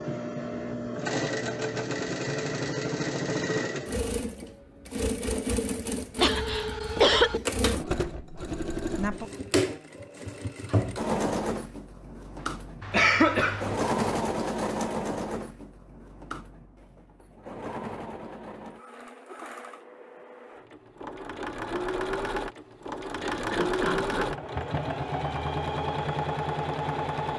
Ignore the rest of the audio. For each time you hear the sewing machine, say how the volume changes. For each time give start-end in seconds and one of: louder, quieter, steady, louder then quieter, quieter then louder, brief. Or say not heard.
0.0-27.3 quieter then louder.